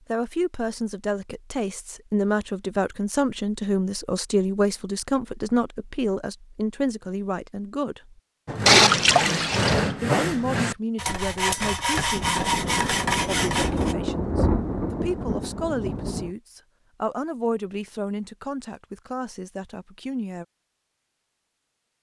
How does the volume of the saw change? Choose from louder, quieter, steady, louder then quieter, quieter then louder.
steady.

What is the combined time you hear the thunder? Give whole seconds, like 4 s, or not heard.
4 s.